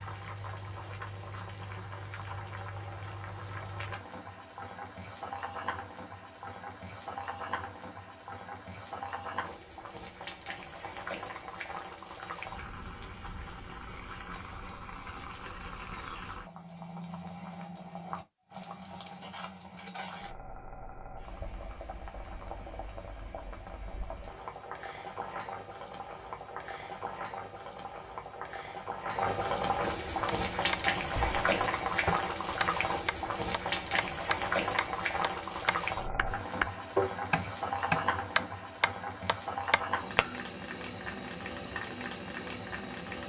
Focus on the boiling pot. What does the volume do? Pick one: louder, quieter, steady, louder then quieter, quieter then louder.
louder.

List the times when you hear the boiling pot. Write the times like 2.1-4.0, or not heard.
0.0-43.2.